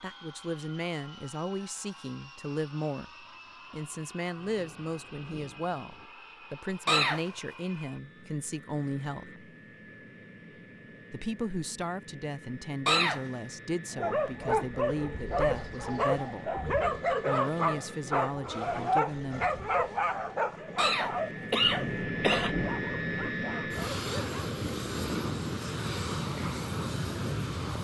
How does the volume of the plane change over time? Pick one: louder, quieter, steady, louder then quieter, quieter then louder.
louder.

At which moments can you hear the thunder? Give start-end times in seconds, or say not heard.
4.3-6.1, 21.6-23.1.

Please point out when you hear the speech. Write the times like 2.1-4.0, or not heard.
0.0-9.3, 11.1-19.5.